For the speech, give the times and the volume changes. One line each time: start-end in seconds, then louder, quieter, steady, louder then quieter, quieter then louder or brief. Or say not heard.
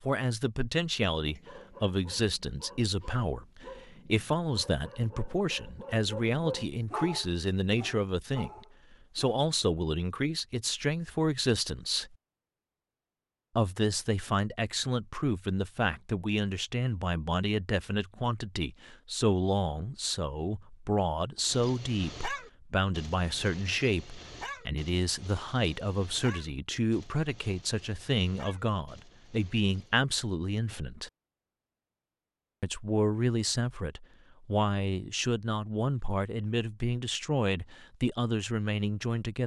0.0-12.2 steady
13.6-31.1 steady
32.6-39.4 steady.